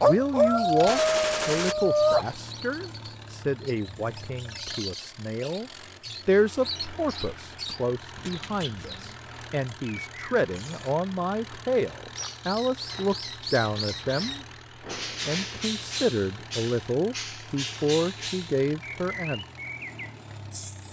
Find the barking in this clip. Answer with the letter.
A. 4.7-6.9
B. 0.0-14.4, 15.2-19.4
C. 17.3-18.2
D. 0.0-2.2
D.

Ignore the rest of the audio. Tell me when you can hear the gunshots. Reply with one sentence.
The gunshots can be heard from 0.8 to 1.8 s.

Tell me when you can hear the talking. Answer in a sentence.
The talking can be heard from 0.0 to 14.4 s and from 15.2 to 19.4 s.